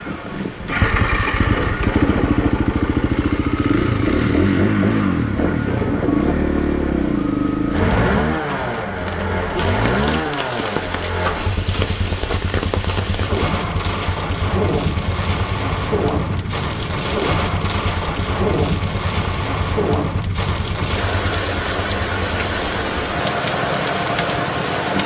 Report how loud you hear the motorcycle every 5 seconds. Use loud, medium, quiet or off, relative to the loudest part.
loud, loud, medium, quiet, medium.